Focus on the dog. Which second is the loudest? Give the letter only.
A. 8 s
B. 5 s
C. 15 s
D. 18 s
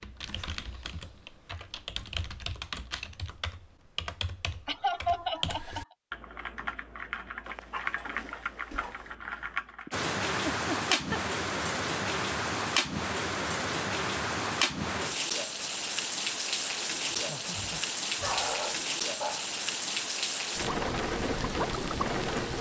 D.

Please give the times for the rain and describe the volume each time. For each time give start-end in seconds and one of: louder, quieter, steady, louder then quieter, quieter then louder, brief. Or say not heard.
9.9-22.5 steady.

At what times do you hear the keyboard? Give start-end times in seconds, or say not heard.
0.0-9.9.